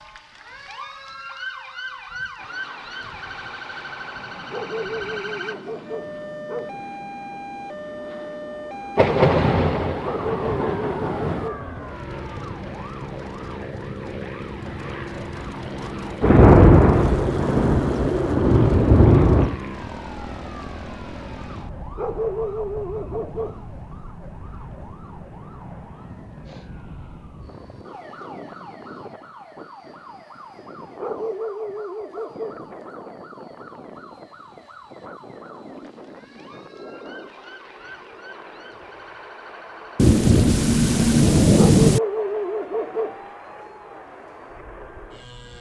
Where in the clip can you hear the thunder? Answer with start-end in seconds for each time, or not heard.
8.9-11.5, 16.2-19.6, 40.0-42.0.